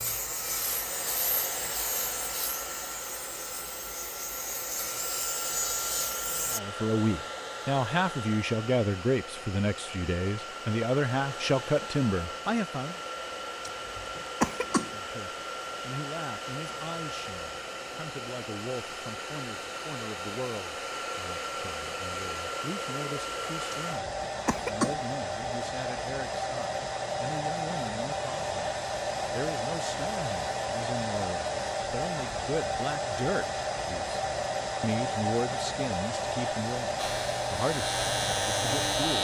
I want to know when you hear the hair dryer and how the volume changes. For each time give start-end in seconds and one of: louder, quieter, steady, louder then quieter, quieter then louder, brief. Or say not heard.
0.0-39.2 louder.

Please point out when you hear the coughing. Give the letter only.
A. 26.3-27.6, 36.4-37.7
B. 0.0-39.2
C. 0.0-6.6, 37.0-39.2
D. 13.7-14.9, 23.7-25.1
D.